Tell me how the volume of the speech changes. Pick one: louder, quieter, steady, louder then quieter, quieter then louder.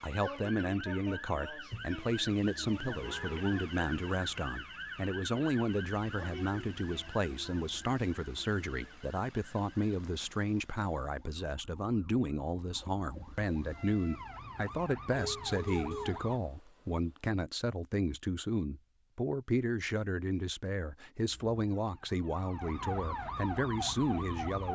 steady.